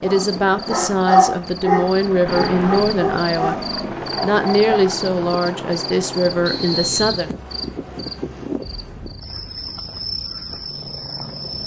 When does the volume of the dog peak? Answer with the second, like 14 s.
1 s.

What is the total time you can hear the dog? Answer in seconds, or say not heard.
5 s.